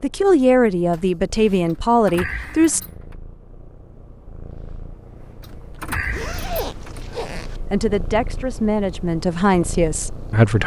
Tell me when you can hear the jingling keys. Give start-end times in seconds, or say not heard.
1.6-3.1, 5.4-7.1.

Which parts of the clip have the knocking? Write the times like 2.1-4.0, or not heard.
not heard.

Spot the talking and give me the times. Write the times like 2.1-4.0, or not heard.
0.0-2.8, 7.7-10.6.